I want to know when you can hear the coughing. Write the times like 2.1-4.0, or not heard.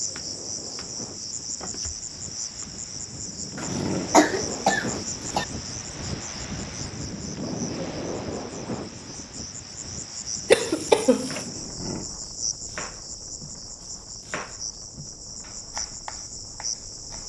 3.5-5.5, 10.5-11.4.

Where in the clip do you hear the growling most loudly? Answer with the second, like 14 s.
4 s.